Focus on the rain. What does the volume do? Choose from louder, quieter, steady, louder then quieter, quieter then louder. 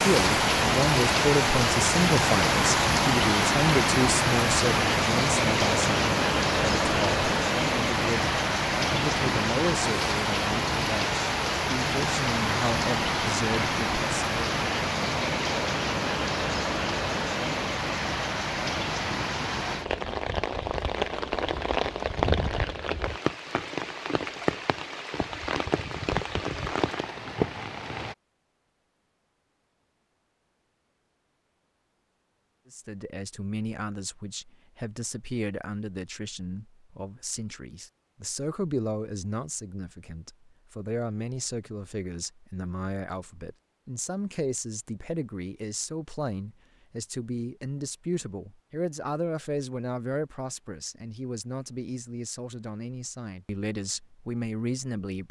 quieter.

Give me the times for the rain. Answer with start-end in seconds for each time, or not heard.
0.0-28.1.